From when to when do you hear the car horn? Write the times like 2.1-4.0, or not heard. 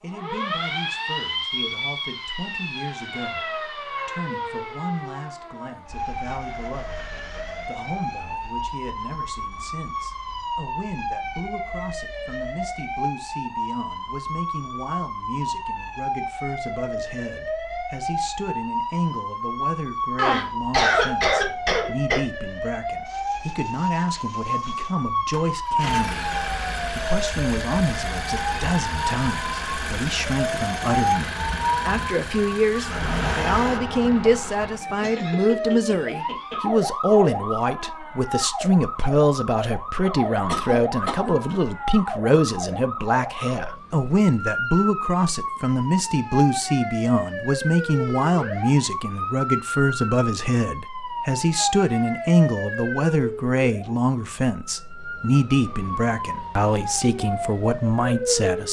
not heard.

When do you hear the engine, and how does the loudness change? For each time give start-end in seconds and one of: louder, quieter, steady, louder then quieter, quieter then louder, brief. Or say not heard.
23.1-33.8 louder.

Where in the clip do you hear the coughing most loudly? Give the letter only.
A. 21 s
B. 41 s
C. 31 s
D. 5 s
A.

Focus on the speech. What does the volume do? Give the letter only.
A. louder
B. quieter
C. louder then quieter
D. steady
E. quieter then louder
A.